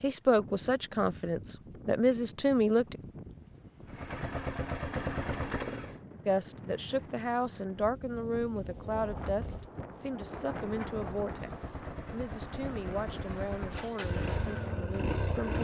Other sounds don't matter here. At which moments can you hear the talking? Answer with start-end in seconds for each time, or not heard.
0.0-3.0, 6.2-15.5.